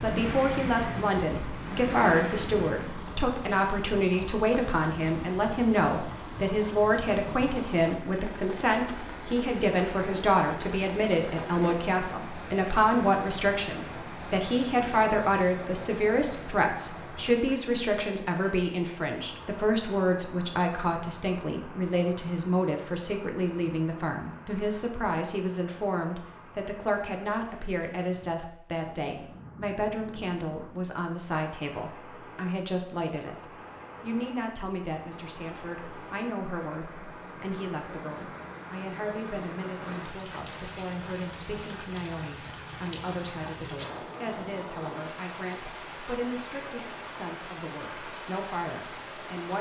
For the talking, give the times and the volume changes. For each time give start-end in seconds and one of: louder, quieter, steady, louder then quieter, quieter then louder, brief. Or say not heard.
0.0-49.5 quieter.